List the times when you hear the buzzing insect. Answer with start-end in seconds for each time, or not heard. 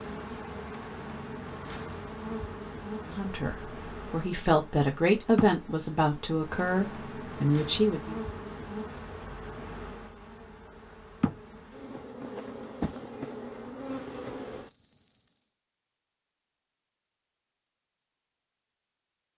0.0-15.6.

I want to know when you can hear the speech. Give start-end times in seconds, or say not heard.
3.0-8.2.